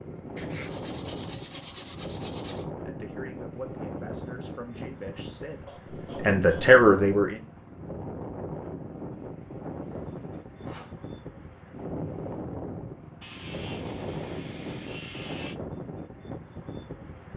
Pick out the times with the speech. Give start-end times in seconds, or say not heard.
2.9-7.4.